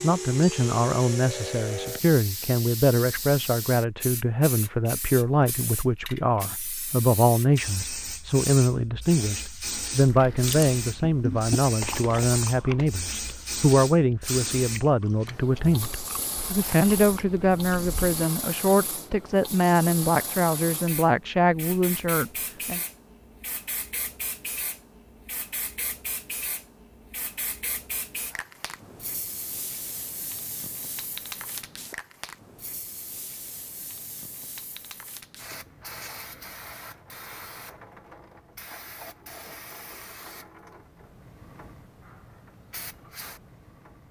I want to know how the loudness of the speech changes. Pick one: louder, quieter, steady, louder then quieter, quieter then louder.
steady.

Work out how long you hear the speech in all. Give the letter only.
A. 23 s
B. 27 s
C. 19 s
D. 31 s
A.